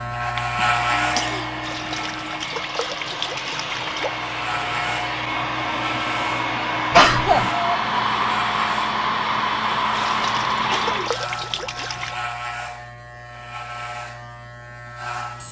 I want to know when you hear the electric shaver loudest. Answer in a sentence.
The loudest moment of the electric shaver is at 1 second.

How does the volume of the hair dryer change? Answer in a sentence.
The loudness of the hair dryer goes up.